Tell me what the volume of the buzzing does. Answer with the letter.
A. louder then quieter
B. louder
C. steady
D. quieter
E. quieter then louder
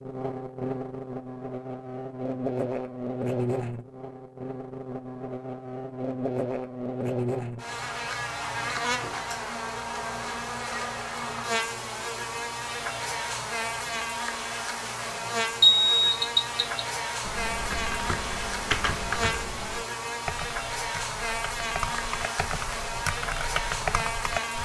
C.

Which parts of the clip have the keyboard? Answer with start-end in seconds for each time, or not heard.
17.2-24.6.